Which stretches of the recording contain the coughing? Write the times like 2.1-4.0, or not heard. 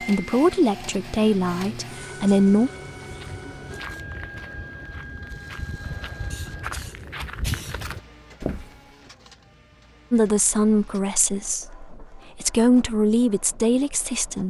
6.3-7.8.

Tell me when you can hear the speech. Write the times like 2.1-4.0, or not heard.
0.0-2.7, 10.1-14.4.